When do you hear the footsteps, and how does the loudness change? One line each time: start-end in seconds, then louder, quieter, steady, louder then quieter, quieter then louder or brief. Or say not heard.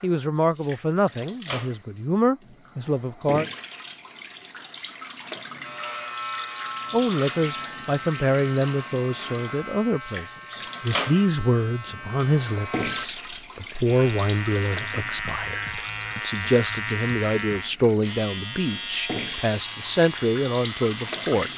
not heard.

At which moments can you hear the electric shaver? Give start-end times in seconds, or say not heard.
5.6-21.5.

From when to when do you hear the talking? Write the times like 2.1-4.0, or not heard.
0.0-3.5, 6.9-21.5.